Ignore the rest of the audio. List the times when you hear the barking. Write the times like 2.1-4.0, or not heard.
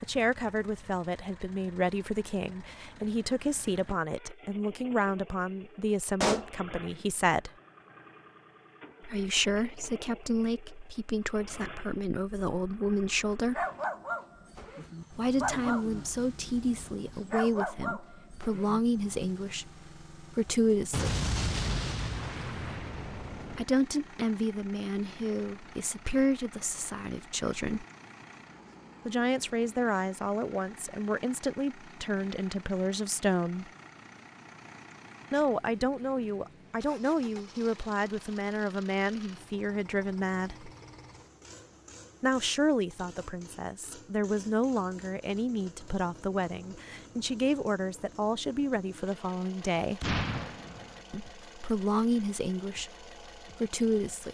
13.4-18.8.